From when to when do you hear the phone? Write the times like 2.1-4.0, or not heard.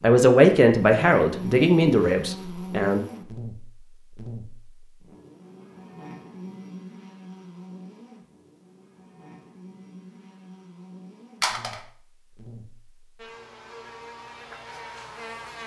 11.4-11.8.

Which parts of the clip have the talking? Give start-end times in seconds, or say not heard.
0.0-3.0.